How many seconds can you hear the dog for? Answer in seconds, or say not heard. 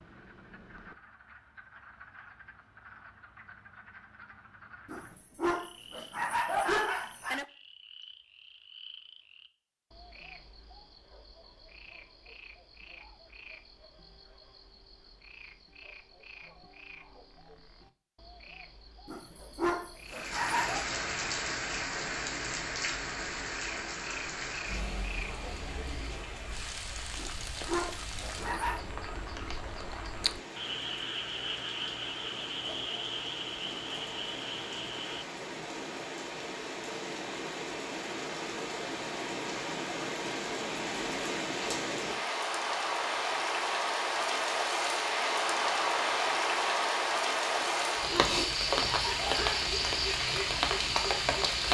8 s.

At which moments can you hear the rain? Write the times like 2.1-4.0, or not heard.
20.1-51.6.